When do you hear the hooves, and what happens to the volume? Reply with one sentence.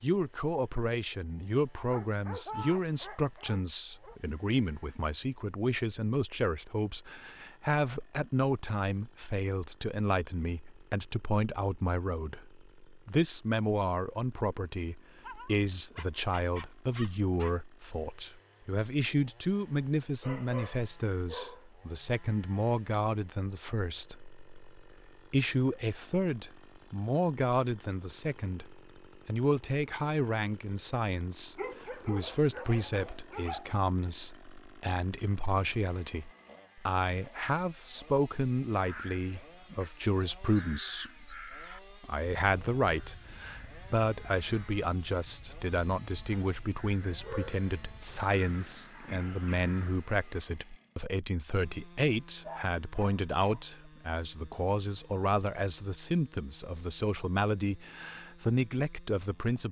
The hooves can't be heard in this clip.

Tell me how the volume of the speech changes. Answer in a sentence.
The loudness of the speech stays about the same.